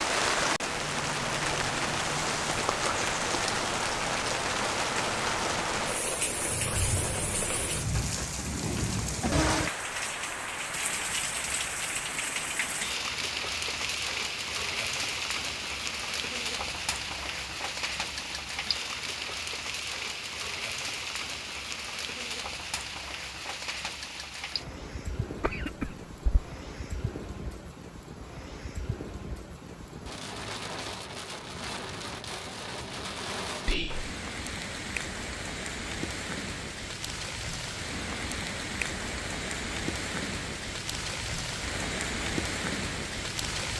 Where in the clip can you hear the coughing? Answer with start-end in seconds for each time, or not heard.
8.6-9.4, 25.4-26.4.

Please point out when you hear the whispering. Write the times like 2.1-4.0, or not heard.
33.6-34.1.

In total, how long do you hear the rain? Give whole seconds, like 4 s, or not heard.
44 s.